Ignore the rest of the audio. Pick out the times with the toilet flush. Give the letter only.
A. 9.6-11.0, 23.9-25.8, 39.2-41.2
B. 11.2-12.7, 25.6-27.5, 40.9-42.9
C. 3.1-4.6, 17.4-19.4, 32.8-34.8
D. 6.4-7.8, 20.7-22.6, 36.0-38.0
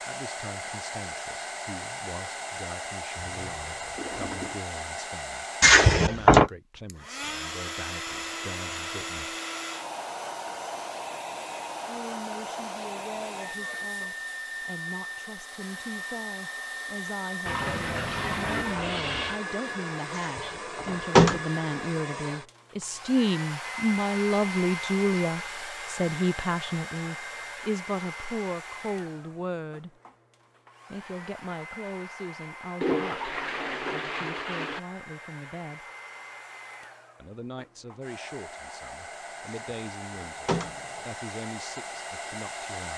C.